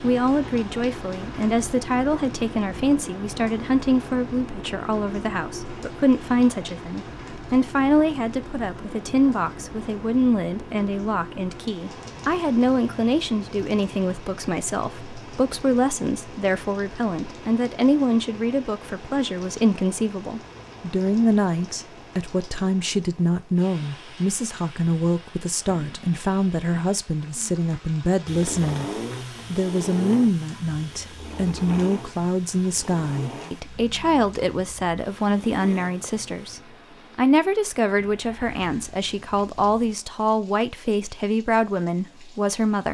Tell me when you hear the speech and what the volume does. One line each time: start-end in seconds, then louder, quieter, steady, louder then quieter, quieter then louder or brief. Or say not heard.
0.0-28.9 steady
29.5-42.8 steady.